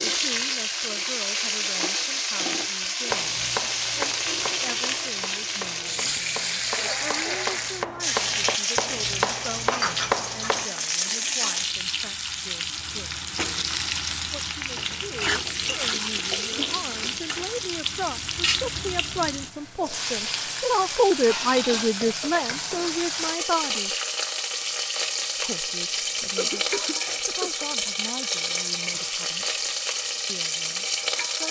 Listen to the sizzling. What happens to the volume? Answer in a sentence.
The volume of the sizzling stays about the same.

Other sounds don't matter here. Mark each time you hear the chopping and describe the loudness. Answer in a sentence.
You can hear the chopping from 3.1 to 10.7 s, getting quieter then louder.